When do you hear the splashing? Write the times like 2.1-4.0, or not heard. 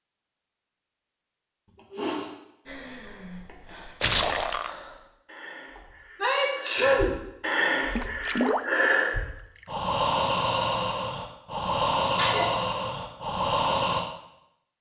4.0-4.8, 8.0-9.0.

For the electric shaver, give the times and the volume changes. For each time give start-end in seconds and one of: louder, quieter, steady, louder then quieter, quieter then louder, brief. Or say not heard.
not heard.